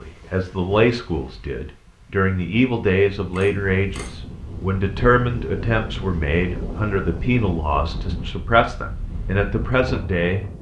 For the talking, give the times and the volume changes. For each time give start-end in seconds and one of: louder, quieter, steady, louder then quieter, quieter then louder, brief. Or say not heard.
0.0-10.5 steady.